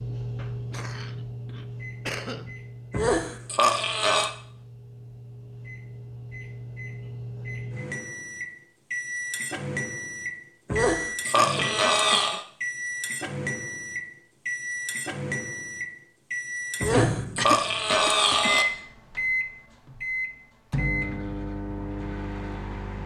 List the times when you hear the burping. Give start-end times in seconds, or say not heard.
2.9-4.3, 10.7-12.4, 16.8-18.6.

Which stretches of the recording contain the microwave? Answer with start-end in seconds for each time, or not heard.
0.0-23.0.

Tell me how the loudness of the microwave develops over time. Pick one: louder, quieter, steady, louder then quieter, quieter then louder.
louder.